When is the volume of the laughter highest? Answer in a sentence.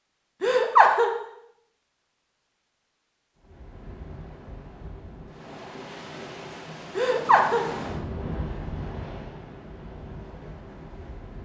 The volume of the laughter peaks at 1 second.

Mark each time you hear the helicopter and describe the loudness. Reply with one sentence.
The helicopter can't be heard in this clip.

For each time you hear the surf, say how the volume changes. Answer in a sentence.
The surf can be heard from 3.4 to 11.4 s, getting louder then quieter.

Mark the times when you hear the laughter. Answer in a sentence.
The laughter can be heard from 0.4 to 1.1 s and from 7.0 to 7.7 s.